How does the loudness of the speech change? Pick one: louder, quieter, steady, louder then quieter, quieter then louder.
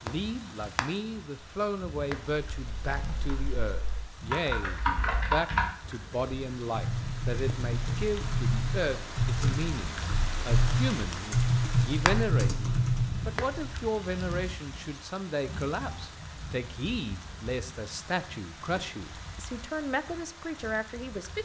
steady.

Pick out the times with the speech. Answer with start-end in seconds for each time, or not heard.
0.0-21.4.